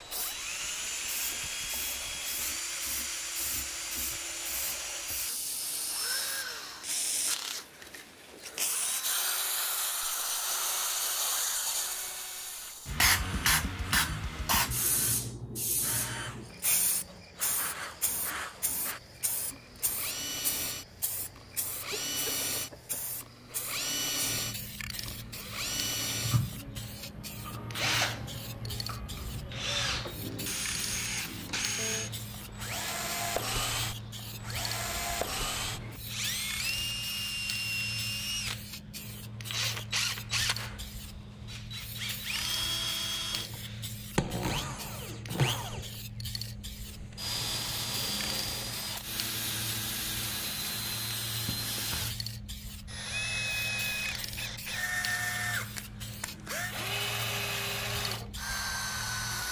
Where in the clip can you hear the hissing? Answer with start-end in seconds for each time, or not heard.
0.0-59.4.